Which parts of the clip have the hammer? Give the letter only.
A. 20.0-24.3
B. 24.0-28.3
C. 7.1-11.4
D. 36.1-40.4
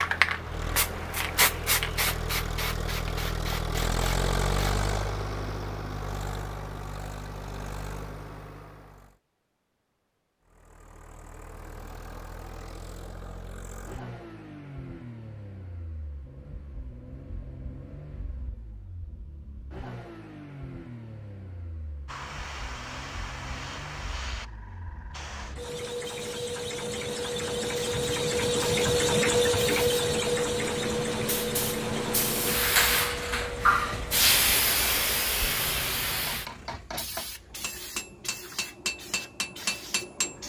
D.